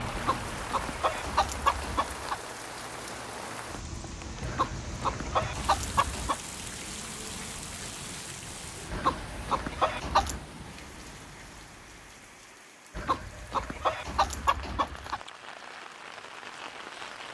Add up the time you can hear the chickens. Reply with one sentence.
You can hear the chickens for 8 seconds altogether.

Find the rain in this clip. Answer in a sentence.
You can hear the rain from 0.0 to 17.2 s.